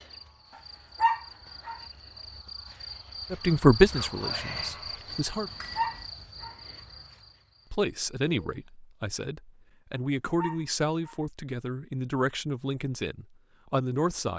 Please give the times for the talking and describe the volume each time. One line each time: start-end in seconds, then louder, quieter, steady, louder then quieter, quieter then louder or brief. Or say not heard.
3.3-5.5 brief
7.7-14.3 steady.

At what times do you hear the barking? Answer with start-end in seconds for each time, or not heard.
1.0-1.8, 5.8-6.5, 10.3-11.2.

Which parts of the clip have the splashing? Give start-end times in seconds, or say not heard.
not heard.